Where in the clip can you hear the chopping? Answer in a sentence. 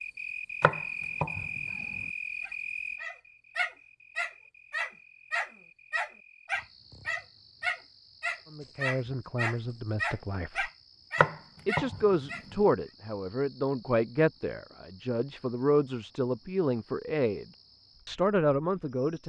The chopping can be heard from 0.6 to 2.0 s and from 11.2 to 12.6 s.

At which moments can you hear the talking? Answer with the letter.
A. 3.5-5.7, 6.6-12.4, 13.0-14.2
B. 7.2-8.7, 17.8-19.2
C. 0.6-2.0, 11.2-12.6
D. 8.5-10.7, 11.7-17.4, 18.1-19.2
D.